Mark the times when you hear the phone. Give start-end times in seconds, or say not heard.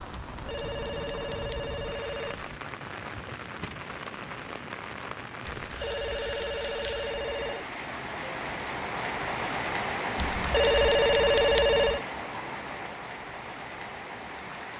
0.1-2.5, 5.5-7.7, 10.2-12.1.